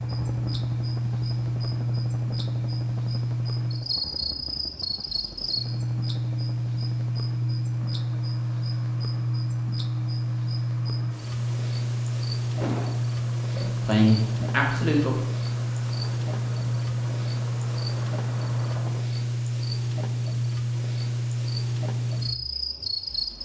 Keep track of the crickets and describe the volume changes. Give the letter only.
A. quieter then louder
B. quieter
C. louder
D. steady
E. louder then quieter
D.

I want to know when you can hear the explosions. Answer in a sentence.
The explosions can be heard from 12.6 to 13.0 s.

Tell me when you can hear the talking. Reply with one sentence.
You can hear the talking from 13.5 to 15.2 s.